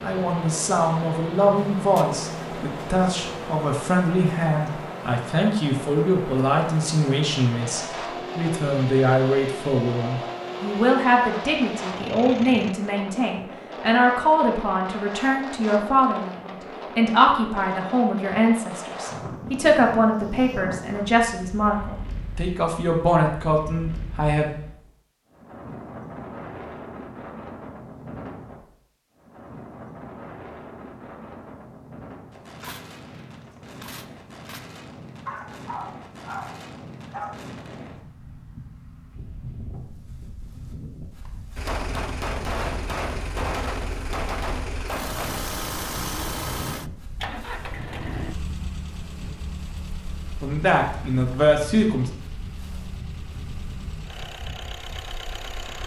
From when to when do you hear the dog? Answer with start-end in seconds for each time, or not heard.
35.2-37.5.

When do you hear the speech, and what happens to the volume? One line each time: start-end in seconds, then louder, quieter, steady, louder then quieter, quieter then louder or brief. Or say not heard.
0.0-24.6 steady
50.4-52.1 brief.